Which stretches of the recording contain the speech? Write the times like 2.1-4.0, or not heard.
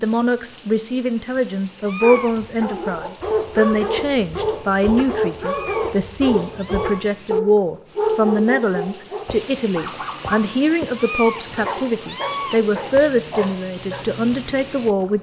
0.0-15.1.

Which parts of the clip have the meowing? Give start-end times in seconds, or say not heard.
1.8-2.5, 5.5-7.0, 10.9-12.6.